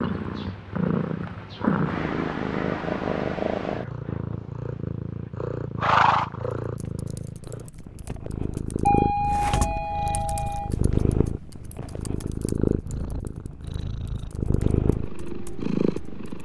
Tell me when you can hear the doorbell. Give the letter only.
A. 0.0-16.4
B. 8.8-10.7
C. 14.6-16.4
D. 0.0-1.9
B.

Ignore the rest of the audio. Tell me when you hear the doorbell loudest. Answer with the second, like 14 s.
9 s.